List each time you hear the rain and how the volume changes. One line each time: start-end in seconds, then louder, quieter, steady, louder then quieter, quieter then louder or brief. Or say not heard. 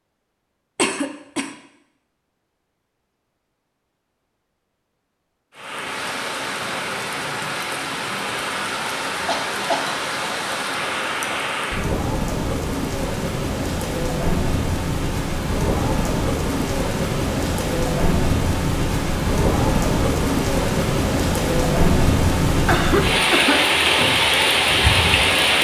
5.5-25.5 louder.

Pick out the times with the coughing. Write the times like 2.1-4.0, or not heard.
0.8-1.5, 9.2-9.9, 22.5-23.6.